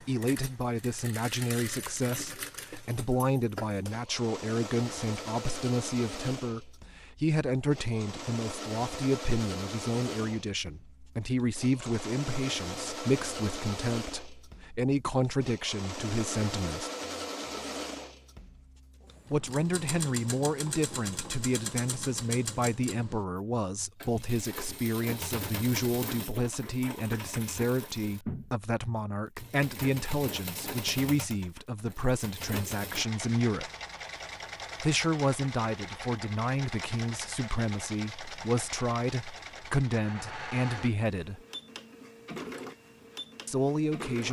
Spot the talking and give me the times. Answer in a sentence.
You can hear the talking from 0.1 to 16.9 s, from 19.3 to 33.7 s, from 34.8 to 41.4 s and from 43.5 to 44.2 s.